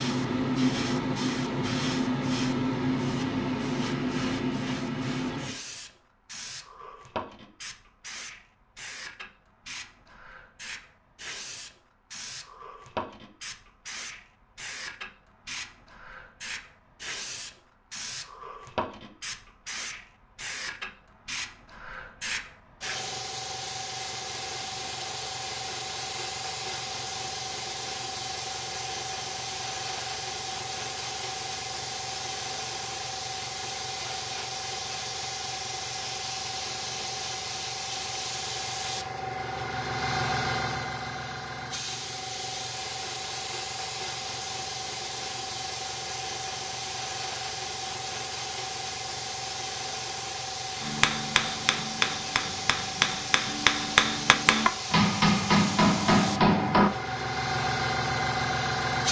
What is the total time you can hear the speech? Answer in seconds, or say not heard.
not heard.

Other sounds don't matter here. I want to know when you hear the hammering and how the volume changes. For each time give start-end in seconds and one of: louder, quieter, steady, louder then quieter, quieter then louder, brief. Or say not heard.
50.8-56.9 louder.